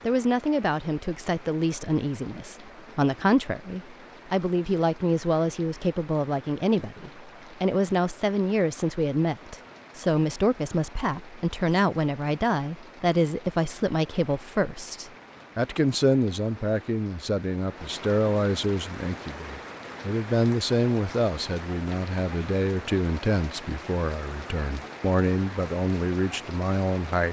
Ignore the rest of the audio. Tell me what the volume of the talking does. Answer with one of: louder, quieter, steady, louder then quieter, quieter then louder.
steady.